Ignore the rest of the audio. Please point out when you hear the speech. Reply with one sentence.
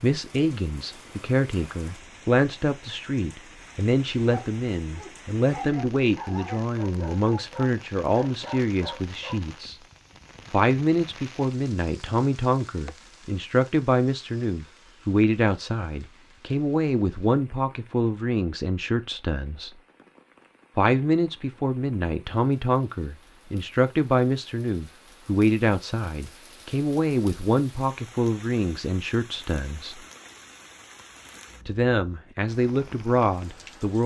You can hear the speech from 0.0 to 9.8 s, from 10.5 to 19.8 s, from 20.8 to 30.1 s and from 31.6 to 34.0 s.